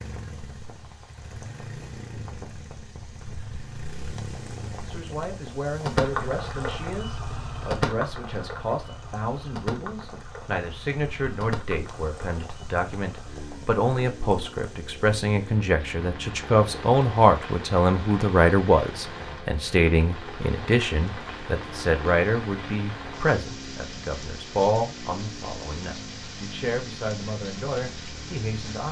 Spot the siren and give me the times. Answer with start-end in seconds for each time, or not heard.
not heard.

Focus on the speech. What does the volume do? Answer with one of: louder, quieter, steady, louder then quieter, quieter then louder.
louder then quieter.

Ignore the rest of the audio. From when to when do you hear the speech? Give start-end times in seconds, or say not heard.
4.8-28.8.